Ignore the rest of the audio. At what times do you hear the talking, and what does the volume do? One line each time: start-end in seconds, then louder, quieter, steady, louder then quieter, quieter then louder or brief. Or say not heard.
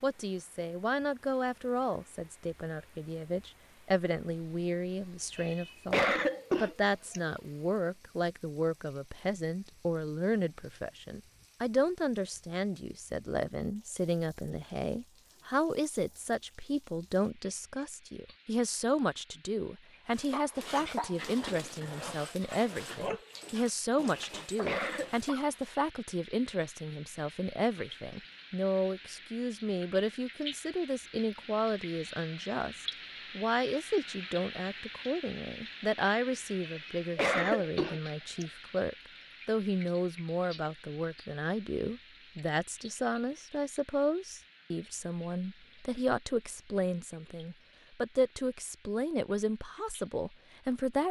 0.0-51.0 steady.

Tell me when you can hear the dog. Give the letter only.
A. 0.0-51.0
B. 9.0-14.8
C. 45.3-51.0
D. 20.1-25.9
D.